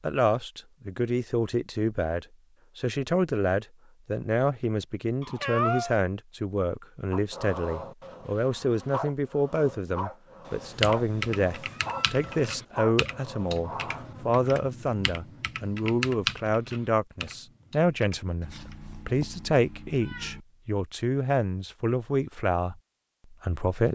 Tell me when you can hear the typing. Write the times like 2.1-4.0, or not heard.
10.8-18.8.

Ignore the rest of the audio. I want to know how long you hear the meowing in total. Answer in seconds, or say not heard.
5 s.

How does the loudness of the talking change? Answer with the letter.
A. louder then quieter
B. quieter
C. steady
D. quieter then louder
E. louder
C.